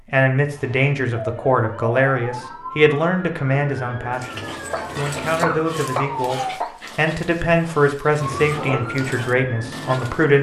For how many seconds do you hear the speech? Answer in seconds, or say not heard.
10 s.